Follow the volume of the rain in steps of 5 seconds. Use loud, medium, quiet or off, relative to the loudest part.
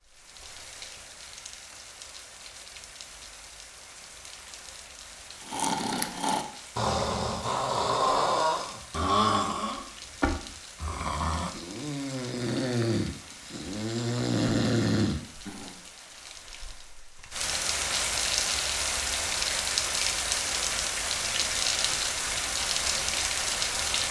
quiet, quiet, quiet, loud, loud.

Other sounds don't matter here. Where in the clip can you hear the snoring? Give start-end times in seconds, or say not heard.
5.4-15.8.